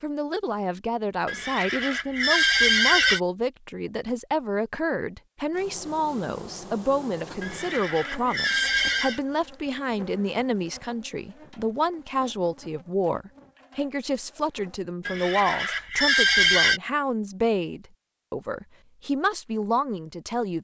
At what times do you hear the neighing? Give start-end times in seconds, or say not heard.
1.2-3.2, 7.4-9.2, 15.1-16.8.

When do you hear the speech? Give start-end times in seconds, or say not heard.
0.0-20.5.